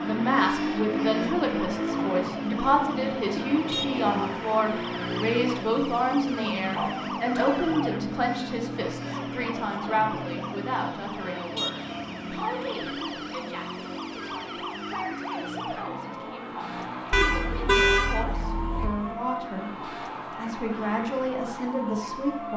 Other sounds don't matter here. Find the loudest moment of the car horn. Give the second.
18 s.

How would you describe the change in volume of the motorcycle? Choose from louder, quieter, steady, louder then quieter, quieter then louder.
quieter.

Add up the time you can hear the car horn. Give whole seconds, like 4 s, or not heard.
3 s.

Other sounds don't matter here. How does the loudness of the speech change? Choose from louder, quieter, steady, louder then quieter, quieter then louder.
quieter then louder.